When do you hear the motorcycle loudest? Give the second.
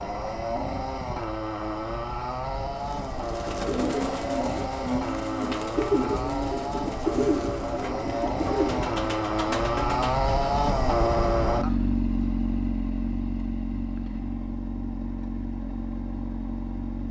11 s.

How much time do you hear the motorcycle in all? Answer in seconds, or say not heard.
17 s.